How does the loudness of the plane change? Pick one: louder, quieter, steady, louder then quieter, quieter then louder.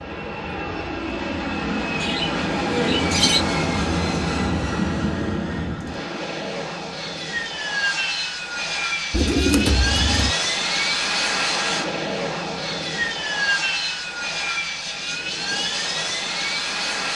steady.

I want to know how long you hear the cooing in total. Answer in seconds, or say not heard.
3 s.